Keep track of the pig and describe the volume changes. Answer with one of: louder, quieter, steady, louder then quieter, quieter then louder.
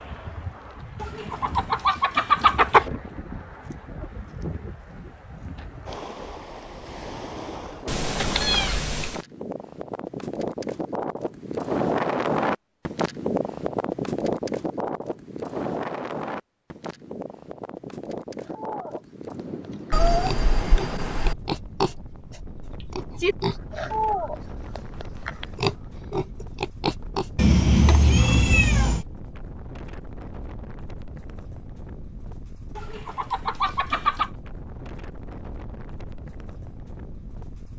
louder.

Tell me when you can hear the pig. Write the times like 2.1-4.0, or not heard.
18.4-27.3.